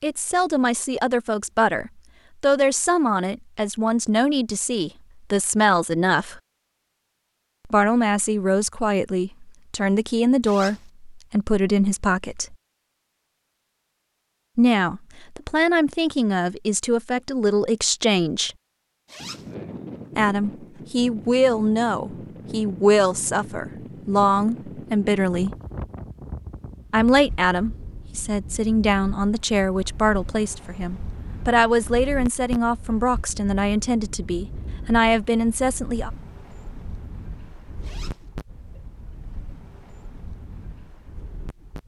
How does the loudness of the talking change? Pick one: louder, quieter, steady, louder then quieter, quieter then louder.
steady.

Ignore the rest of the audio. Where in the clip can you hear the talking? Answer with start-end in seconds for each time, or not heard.
0.0-6.4, 7.7-12.6, 14.6-18.6, 20.1-25.6, 26.9-36.1.